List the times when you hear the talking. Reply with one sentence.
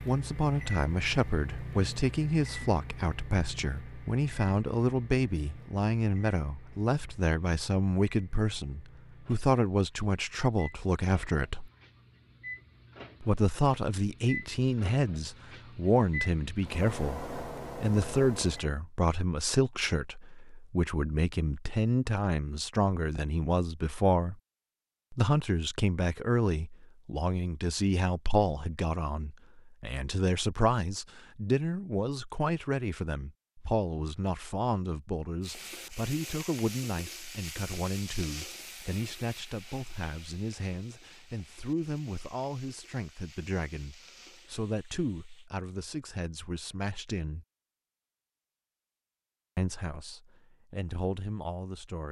You can hear the talking from 0.0 to 11.7 s, from 13.2 to 24.4 s, from 25.1 to 47.5 s and from 49.5 to 52.0 s.